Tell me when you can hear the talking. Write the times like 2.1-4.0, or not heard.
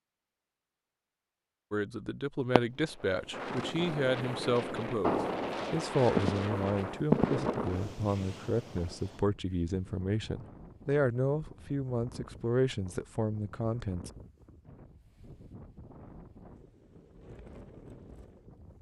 1.7-14.1.